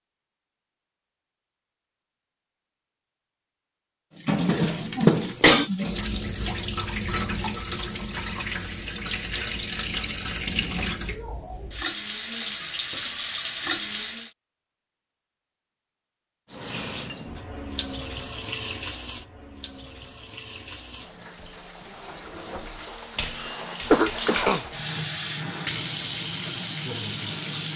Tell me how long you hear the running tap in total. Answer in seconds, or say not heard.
21 s.